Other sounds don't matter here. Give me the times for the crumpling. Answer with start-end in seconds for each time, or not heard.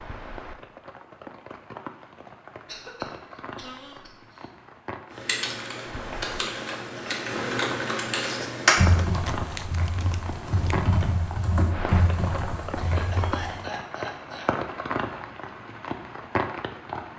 8.8-10.8.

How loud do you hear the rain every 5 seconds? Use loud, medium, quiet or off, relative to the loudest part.
medium, loud, loud, loud.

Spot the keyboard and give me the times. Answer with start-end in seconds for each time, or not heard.
5.1-13.6.